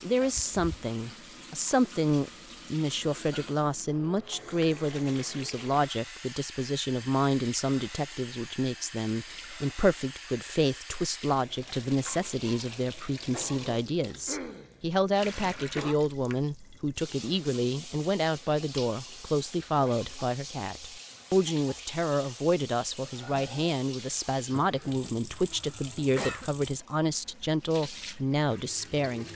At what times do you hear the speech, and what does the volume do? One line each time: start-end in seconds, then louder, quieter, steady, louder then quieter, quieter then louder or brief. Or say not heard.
0.0-29.3 steady.